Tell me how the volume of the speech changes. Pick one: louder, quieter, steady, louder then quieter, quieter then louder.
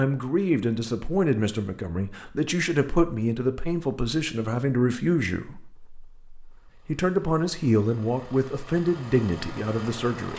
steady.